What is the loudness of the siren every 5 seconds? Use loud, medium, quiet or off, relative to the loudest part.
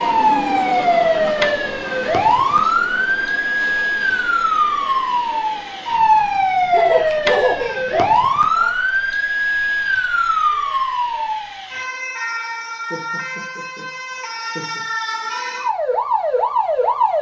loud, loud, medium, loud.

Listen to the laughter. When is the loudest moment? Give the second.
7 s.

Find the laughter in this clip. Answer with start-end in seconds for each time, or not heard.
0.1-1.2, 6.7-8.7, 12.8-14.8.